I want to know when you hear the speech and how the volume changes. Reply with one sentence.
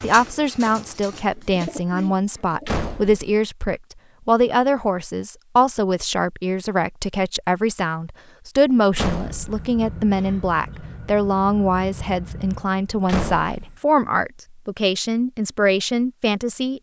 The speech can be heard from 0.0 to 16.7 s, at a steady volume.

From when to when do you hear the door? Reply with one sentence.
You can hear the door from 2.6 to 3.2 s, from 8.9 to 9.6 s and from 13.1 to 13.8 s.